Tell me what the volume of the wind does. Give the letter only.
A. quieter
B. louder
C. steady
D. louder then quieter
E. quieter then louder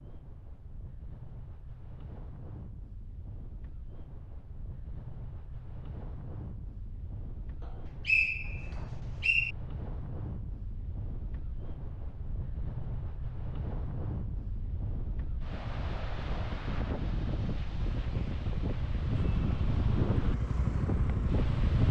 B.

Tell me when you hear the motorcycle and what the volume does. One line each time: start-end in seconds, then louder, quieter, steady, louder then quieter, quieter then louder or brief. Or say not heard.
17.8-21.8 louder.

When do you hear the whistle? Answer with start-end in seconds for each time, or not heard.
8.1-9.6.